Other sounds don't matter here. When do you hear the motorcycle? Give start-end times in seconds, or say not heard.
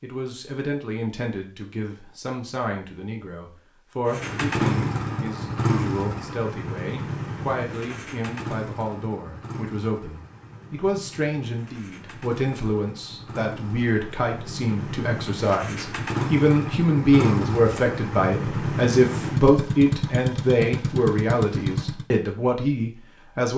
4.0-22.1.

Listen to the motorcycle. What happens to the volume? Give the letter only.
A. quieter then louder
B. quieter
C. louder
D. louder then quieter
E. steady
A.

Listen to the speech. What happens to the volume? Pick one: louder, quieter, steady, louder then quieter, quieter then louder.
louder.